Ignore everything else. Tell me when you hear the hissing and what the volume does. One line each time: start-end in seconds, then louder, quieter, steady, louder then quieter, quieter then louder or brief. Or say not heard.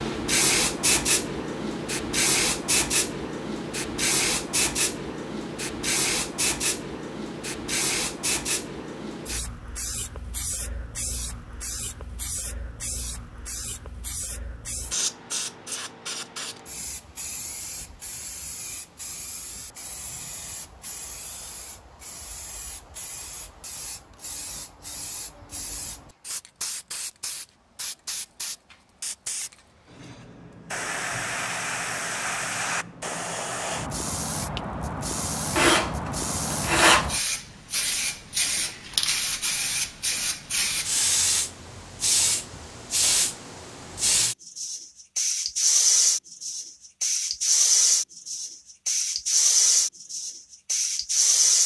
0.0-51.6 quieter then louder.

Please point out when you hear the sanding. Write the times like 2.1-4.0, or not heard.
35.5-37.1.